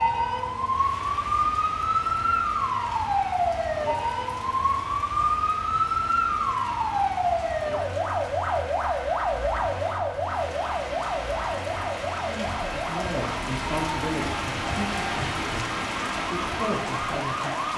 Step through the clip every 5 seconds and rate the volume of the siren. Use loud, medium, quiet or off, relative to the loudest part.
loud, loud, medium, medium.